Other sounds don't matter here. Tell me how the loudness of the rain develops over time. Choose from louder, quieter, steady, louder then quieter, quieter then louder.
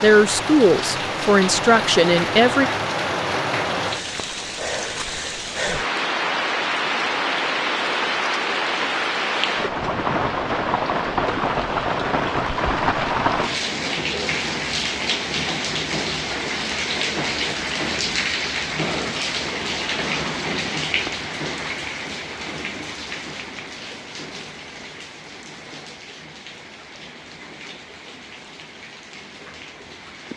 quieter.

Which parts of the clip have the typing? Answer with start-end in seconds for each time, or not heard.
not heard.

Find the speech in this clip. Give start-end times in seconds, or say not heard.
0.0-2.7.